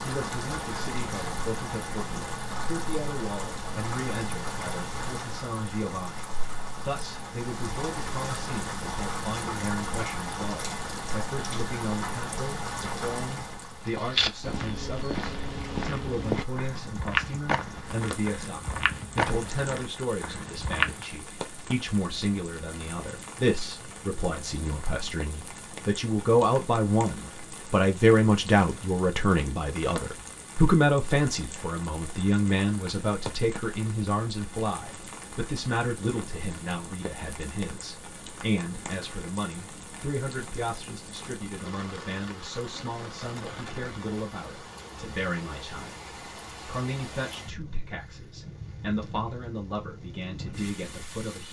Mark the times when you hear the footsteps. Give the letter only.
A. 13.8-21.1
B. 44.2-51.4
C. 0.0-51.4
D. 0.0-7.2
A.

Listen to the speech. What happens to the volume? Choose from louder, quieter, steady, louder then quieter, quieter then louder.
louder then quieter.